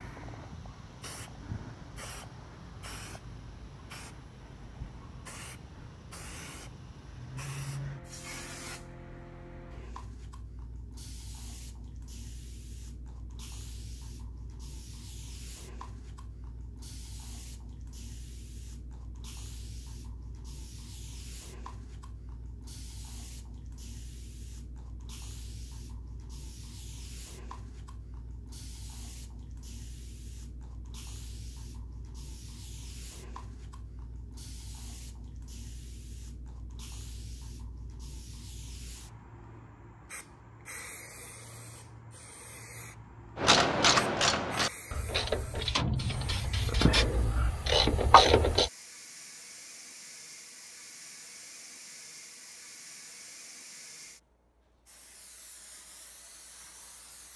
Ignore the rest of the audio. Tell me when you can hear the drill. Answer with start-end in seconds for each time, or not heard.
not heard.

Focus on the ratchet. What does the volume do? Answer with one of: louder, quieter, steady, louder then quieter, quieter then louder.
quieter then louder.